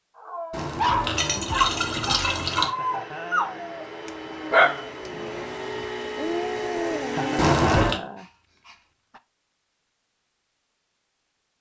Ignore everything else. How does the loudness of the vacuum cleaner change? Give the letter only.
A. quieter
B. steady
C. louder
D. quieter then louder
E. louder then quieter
C.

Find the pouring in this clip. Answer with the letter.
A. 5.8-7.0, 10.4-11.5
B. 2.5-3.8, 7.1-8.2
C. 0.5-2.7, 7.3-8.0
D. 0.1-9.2
C.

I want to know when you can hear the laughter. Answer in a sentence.
The laughter can be heard from 2.5 to 3.8 s and from 7.1 to 8.2 s.